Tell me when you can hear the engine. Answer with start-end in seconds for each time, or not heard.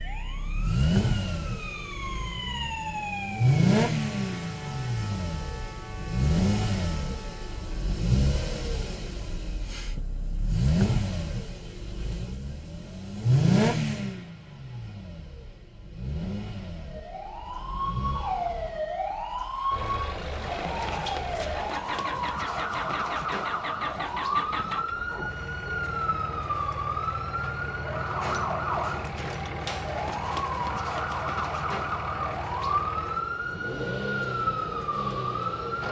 0.0-35.8.